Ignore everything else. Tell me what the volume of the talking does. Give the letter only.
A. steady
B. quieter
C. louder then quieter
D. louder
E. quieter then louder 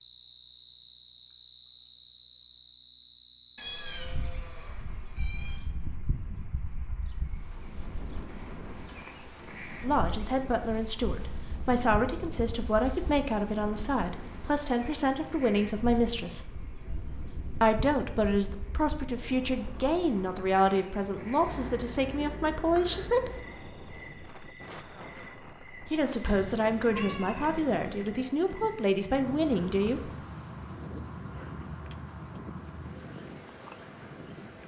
A.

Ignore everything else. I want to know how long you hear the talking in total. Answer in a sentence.
The talking can be heard for 17 seconds in total.